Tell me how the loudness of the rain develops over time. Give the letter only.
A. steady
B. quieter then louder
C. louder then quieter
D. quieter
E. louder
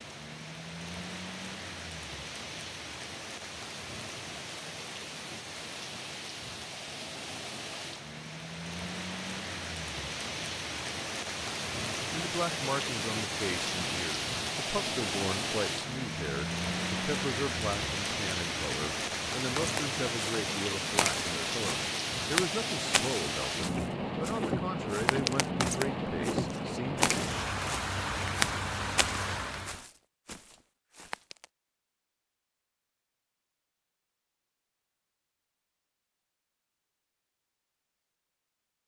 E.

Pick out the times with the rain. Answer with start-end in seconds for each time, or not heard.
0.0-29.9.